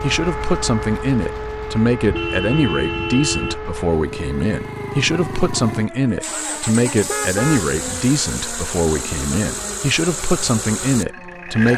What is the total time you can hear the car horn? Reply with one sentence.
You can hear the car horn for 2 seconds altogether.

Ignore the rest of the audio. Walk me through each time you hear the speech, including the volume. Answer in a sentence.
You can hear the speech from 0.0 to 11.7 s, at a steady volume.